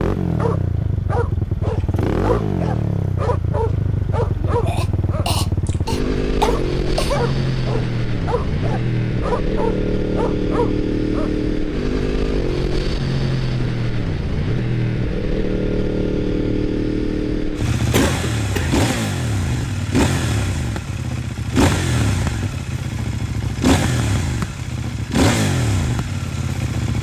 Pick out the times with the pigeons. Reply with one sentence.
You can't hear the pigeons here.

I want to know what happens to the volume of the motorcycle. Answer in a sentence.
The volume of the motorcycle stays about the same.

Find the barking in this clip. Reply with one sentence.
The barking can be heard from 0.3 to 11.3 s.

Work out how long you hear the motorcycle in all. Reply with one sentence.
The motorcycle can be heard for 27 seconds in total.